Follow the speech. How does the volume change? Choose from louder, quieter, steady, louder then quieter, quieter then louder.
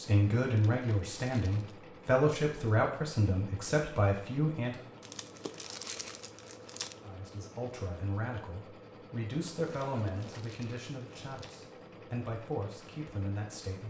quieter.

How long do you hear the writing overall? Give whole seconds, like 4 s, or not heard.
not heard.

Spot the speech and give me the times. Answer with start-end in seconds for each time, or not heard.
0.0-4.8, 7.0-13.8.